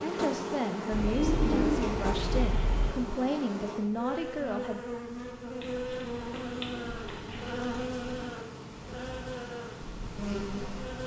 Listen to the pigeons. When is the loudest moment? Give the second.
2 s.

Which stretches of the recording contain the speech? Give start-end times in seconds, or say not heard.
0.0-5.0.